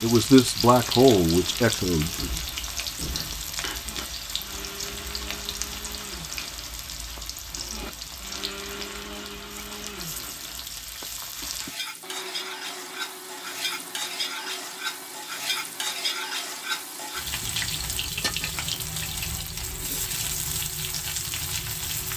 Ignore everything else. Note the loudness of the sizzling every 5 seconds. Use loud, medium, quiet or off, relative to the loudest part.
loud, medium, loud, loud, loud.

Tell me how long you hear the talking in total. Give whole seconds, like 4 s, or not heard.
2 s.